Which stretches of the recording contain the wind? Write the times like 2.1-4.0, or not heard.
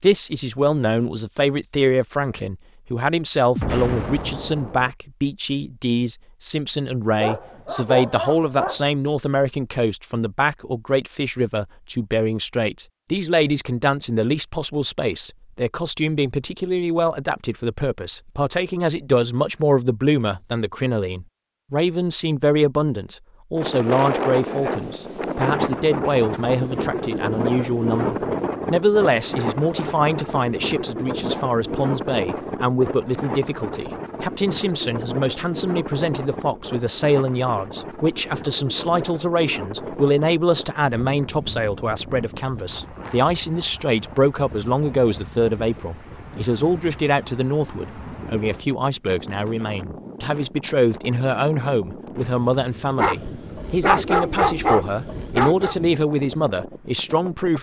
23.6-57.5.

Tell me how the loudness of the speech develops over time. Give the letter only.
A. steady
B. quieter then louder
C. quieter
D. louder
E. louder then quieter
A.